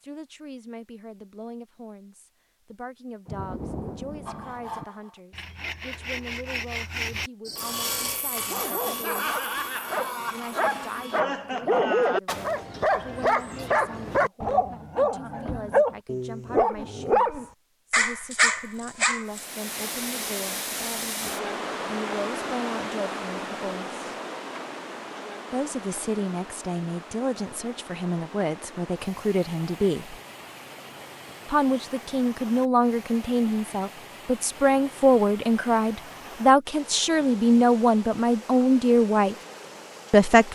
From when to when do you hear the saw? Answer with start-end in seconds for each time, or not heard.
4.2-11.2.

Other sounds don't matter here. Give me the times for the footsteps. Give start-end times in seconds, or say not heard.
not heard.